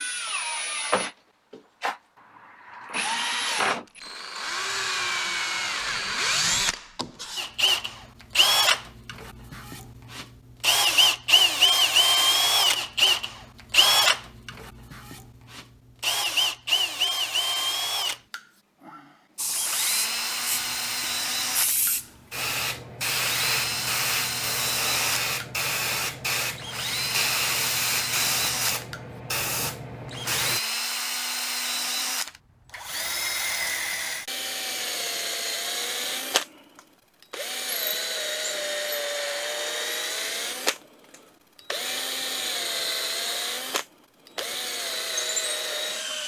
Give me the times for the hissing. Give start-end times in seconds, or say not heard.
19.4-30.6.